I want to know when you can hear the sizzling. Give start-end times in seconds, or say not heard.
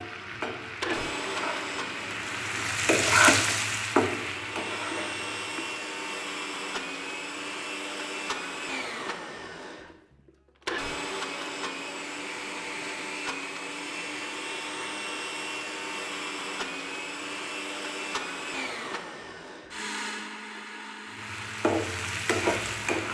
0.0-5.7, 21.1-23.0.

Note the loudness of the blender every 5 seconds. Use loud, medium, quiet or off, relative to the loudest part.
loud, loud, loud, loud, medium.